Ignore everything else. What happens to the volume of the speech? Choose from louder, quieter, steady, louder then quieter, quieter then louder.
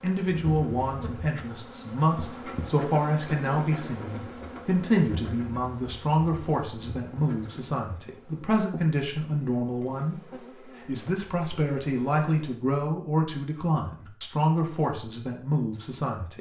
steady.